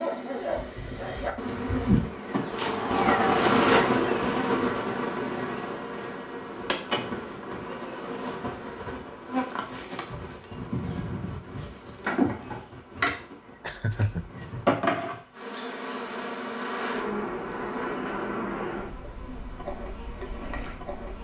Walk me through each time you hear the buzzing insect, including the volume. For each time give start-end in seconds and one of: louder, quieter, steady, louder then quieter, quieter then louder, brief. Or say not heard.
0.0-21.1 quieter.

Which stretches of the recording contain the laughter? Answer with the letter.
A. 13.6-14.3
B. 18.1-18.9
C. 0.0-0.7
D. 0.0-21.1
A.